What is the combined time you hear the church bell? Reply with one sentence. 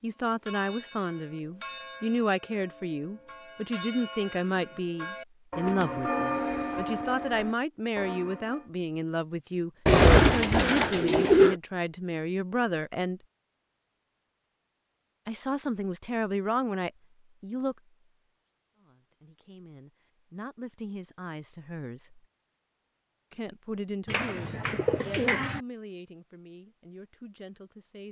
The church bell can be heard for 8 seconds in total.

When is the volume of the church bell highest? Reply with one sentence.
The volume of the church bell peaks at 6 seconds.